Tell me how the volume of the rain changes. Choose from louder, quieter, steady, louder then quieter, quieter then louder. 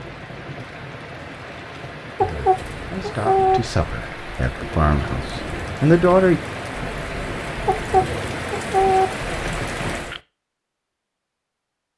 louder.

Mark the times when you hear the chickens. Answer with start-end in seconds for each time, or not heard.
2.1-3.6, 7.7-9.1.